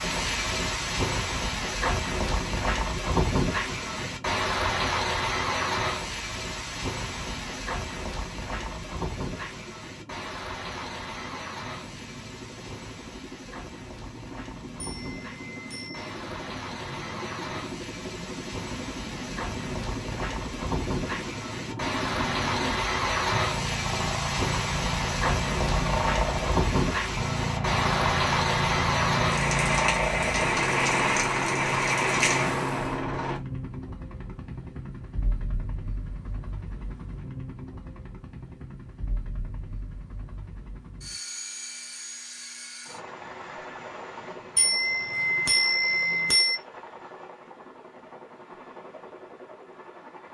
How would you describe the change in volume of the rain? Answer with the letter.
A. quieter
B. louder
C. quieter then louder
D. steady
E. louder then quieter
C.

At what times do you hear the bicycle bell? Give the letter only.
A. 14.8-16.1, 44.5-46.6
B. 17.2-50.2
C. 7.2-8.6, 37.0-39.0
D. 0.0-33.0
A.